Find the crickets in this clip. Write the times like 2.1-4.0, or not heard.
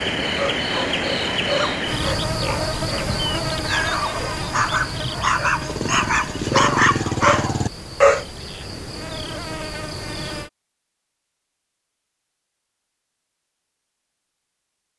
0.0-10.5.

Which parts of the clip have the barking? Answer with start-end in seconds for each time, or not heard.
0.2-8.2.